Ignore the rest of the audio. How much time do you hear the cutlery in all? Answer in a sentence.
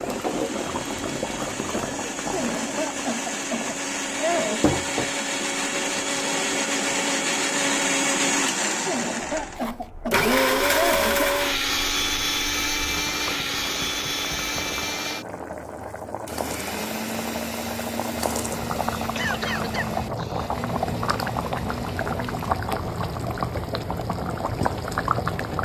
The cutlery can't be heard in this clip.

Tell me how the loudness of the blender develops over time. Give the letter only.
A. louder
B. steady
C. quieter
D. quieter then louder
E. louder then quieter
E.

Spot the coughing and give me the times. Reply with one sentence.
You can hear the coughing from 2.3 to 4.7 s, from 8.8 to 11.3 s and from 18.9 to 20.7 s.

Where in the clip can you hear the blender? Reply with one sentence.
The blender can be heard from 0.0 to 22.6 s.